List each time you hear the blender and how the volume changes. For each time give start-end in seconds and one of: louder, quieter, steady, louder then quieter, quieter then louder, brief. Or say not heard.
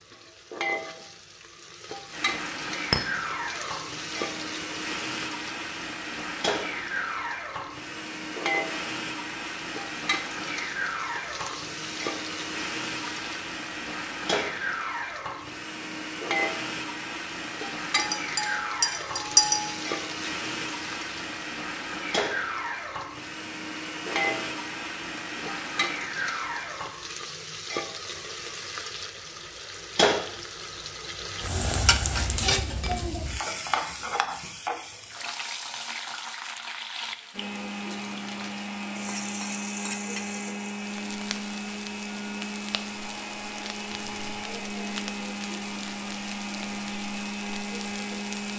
2.1-26.9 steady
37.3-48.5 steady.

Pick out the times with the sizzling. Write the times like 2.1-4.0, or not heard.
0.0-48.5.